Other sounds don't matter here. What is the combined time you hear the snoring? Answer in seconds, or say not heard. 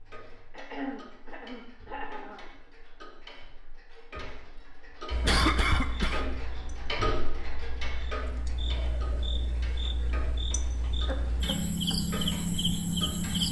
not heard.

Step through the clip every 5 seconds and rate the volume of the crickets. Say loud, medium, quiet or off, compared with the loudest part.
off, quiet, loud.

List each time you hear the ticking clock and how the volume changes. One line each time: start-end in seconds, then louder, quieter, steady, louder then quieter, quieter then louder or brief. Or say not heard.
0.0-13.4 louder then quieter.